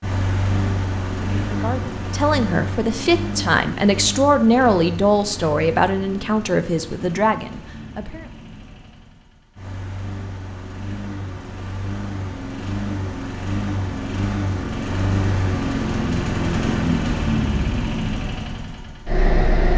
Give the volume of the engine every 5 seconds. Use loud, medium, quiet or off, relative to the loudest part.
medium, quiet, medium, loud.